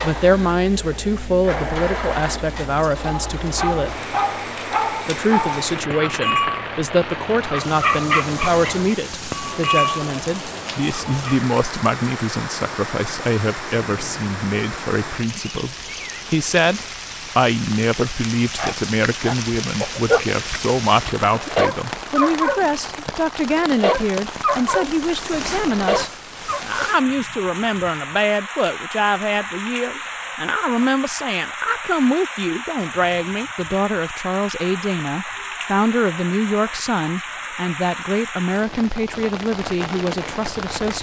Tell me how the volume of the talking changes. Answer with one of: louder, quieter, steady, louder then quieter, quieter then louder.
steady.